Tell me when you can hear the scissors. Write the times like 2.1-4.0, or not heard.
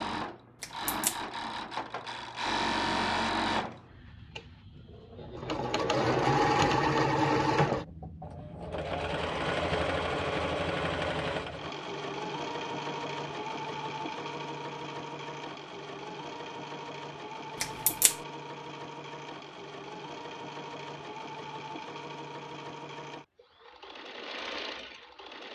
0.6-1.2, 17.6-18.1.